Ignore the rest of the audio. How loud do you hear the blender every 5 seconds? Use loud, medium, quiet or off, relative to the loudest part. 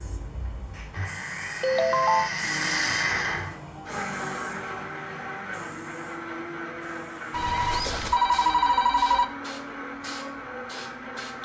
loud, medium, medium.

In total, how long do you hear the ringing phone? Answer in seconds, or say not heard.
3 s.